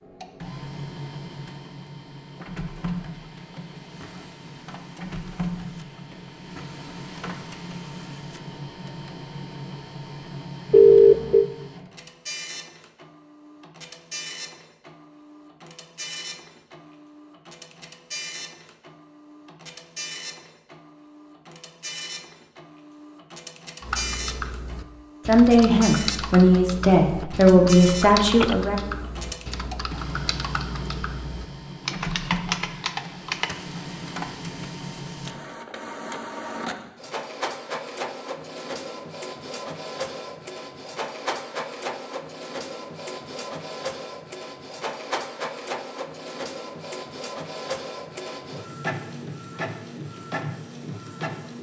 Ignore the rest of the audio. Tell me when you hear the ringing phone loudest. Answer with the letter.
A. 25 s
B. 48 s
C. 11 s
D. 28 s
C.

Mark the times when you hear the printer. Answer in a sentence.
The printer can be heard from 0.0 to 51.5 s.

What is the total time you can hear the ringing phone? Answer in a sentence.
You can hear the ringing phone for 2 seconds altogether.